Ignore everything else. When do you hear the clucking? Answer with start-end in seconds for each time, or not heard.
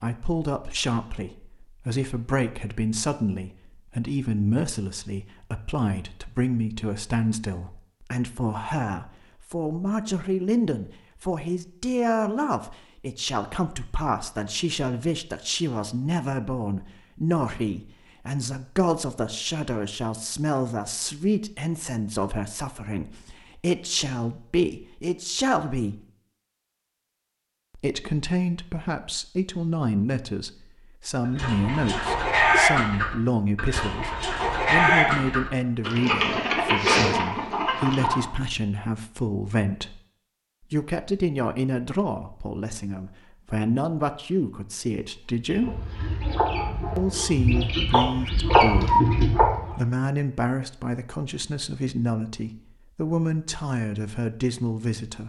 31.2-38.3, 45.5-49.9.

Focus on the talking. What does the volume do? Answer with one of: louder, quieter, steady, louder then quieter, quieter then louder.
steady.